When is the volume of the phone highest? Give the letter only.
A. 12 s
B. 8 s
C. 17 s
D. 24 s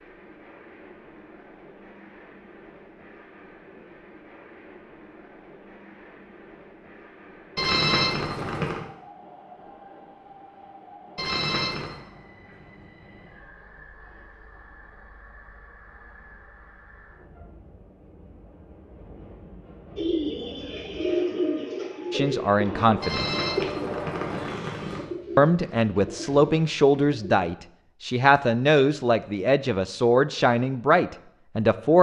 B.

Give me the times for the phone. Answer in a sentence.
The phone can be heard from 7.5 to 8.8 s, from 11.2 to 11.9 s and from 23.0 to 25.1 s.